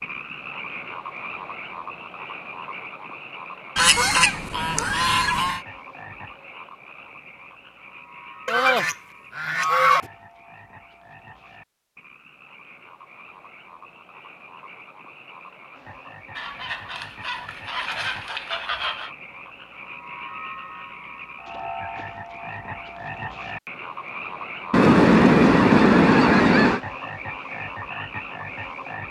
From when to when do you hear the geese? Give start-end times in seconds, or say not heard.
3.8-5.6, 8.4-10.1, 16.4-19.1, 24.7-26.8.